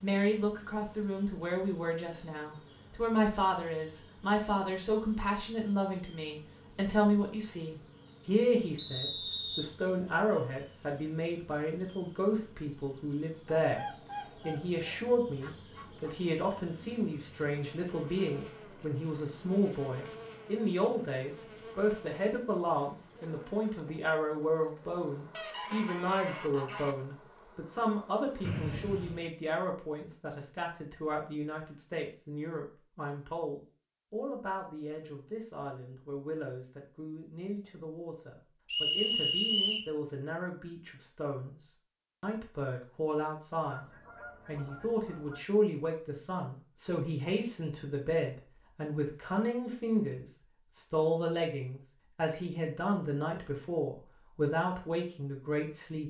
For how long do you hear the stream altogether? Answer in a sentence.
You can't hear the stream here.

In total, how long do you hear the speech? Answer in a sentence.
You can hear the speech for 56 seconds altogether.